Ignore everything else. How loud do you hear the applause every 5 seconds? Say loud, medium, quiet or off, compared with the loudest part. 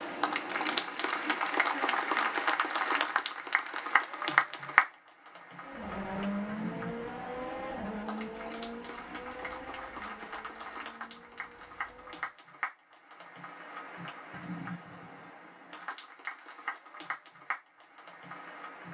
loud, quiet, quiet, quiet.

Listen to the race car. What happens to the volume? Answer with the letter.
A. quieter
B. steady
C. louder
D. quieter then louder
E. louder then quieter
A.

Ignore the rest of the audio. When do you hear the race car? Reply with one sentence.
You can hear the race car from 5.7 to 12.3 s.